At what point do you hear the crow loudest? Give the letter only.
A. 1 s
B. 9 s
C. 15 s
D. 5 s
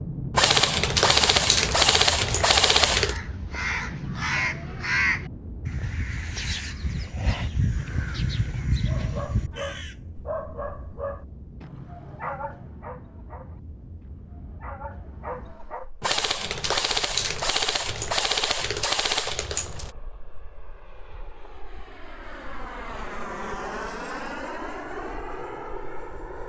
D.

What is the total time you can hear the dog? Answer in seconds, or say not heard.
7 s.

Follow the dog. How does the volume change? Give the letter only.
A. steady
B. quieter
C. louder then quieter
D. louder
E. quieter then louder
E.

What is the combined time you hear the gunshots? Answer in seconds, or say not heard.
7 s.